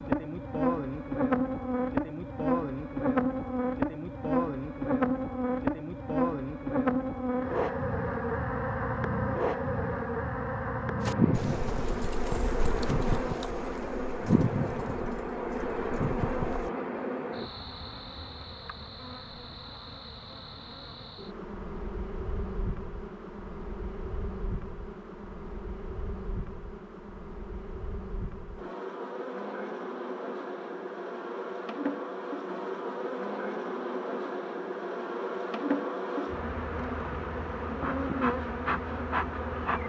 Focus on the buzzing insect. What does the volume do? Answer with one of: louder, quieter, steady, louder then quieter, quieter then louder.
quieter then louder.